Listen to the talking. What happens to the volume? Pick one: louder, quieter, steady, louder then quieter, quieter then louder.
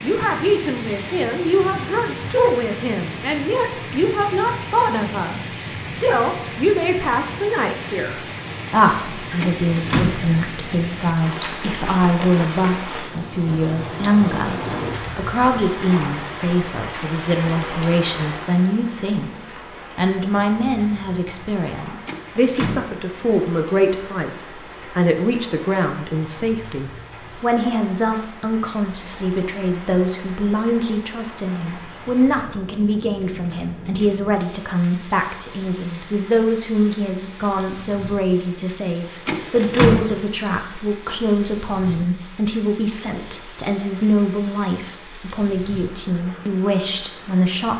steady.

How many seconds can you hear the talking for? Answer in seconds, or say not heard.
48 s.